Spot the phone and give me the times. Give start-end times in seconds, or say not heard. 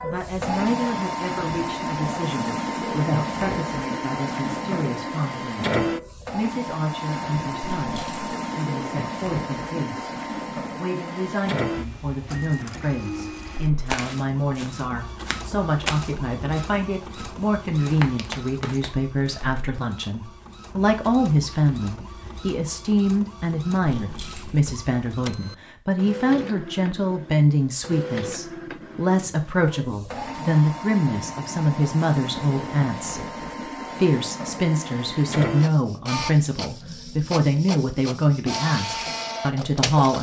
not heard.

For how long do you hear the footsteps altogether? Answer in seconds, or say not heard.
6 s.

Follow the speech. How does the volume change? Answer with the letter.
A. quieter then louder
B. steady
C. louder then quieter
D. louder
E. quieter
D.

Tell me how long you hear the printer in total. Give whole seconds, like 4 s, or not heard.
40 s.